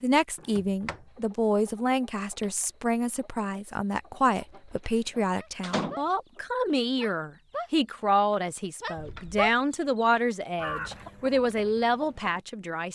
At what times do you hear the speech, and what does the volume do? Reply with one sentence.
The speech can be heard from 0.0 to 12.8 s, at a steady volume.